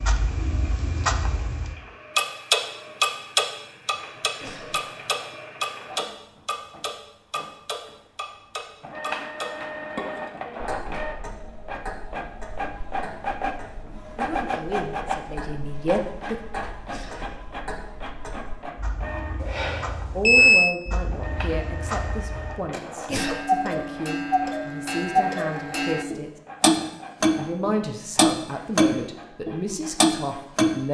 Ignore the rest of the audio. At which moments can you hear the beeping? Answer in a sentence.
You can hear the beeping from 19.4 to 20.8 s.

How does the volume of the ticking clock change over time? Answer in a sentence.
The volume of the ticking clock goes down, then up.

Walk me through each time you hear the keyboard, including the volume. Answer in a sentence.
You can't hear the keyboard here.